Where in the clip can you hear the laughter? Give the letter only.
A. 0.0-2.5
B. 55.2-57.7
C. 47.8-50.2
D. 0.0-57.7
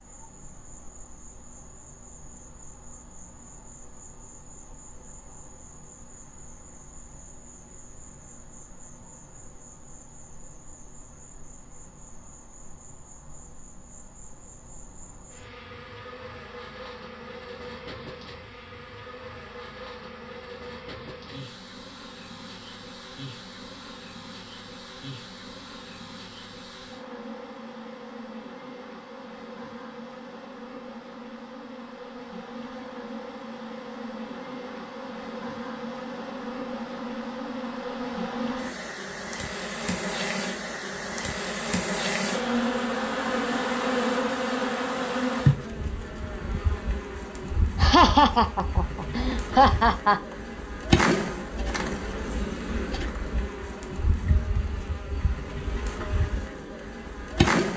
C.